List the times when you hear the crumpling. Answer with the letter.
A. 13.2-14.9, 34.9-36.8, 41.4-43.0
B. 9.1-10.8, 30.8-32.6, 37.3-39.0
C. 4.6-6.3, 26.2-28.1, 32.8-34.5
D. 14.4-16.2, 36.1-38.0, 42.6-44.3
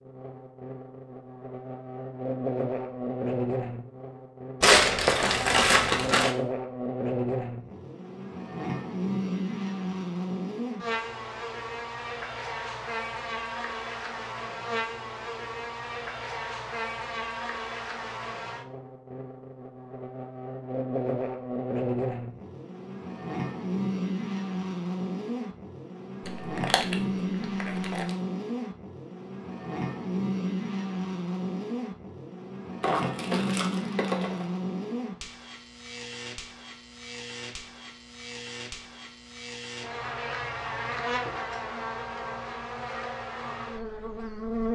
C.